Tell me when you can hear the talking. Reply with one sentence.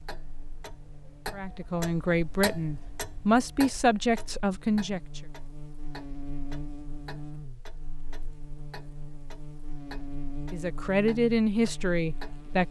The talking can be heard from 1.3 to 5.2 s and from 10.5 to 12.6 s.